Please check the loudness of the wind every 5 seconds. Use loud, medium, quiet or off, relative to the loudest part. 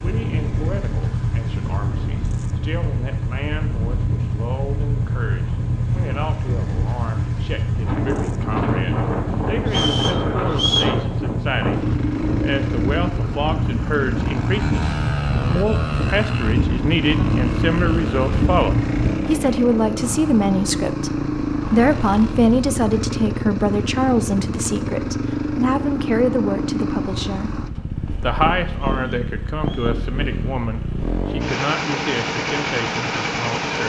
medium, loud, loud, loud, off, off, off.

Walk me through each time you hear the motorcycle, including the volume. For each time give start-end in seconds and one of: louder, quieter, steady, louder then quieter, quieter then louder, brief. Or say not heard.
0.0-33.8 steady.